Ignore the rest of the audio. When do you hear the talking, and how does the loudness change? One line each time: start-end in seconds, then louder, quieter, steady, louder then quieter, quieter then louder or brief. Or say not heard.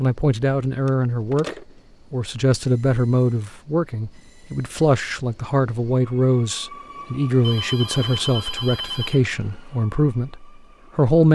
0.0-11.2 steady.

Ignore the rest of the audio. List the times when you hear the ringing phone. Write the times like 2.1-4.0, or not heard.
0.8-1.6, 7.4-9.2.